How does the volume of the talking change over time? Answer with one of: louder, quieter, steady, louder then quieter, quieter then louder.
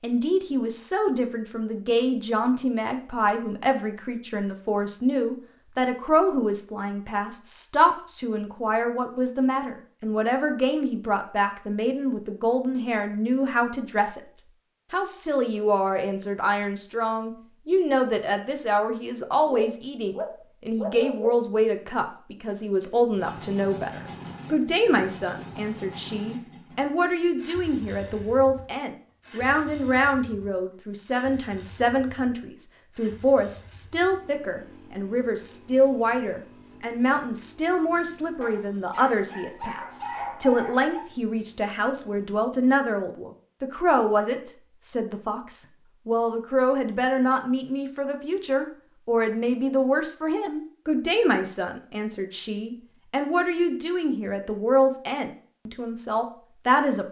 steady.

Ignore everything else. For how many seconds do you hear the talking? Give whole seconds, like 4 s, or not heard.
57 s.